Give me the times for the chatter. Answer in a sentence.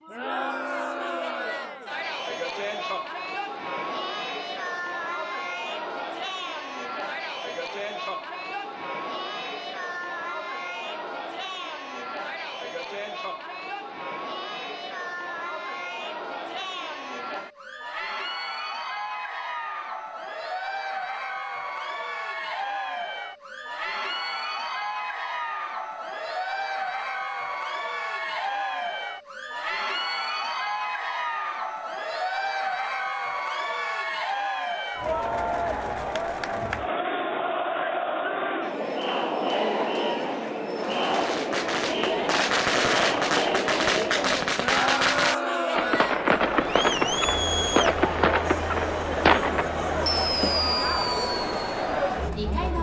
The chatter can be heard from 0.0 to 52.7 s.